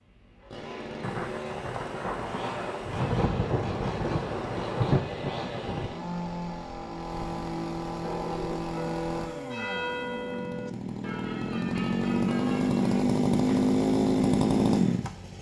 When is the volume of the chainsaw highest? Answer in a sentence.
The loudest moment of the chainsaw is at 14 seconds.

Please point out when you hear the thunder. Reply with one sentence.
The thunder can be heard from 1.0 to 6.0 s.